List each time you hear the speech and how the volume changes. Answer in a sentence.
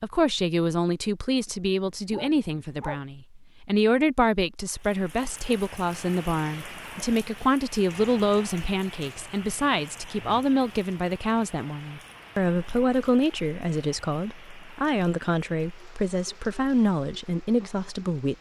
You can hear the speech from 0.0 to 18.3 s, at a steady volume.